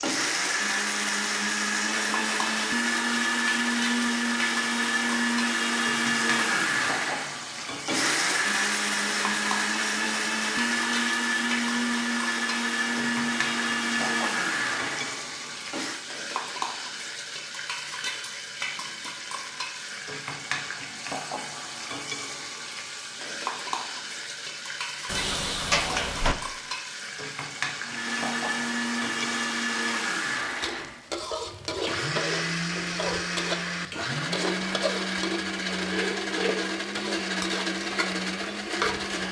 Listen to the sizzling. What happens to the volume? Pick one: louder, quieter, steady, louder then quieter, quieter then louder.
steady.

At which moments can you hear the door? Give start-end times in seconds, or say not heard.
25.1-26.4.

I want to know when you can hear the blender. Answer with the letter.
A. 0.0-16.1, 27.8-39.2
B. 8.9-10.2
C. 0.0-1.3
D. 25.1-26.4
A.